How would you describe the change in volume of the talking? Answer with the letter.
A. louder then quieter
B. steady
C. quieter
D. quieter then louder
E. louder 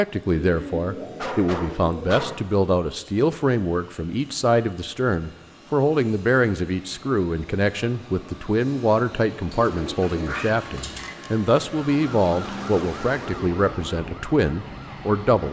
B.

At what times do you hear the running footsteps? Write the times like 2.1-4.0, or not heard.
not heard.